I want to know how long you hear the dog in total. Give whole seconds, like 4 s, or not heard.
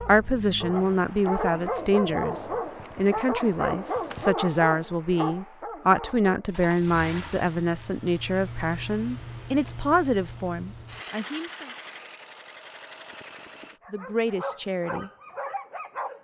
9 s.